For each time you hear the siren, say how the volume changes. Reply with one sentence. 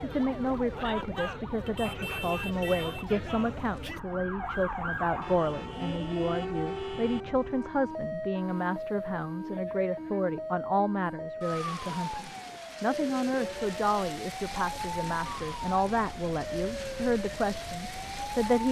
You can hear the siren from 0.0 to 18.6 s, at a steady volume.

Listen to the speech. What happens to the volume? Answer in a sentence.
The volume of the speech stays about the same.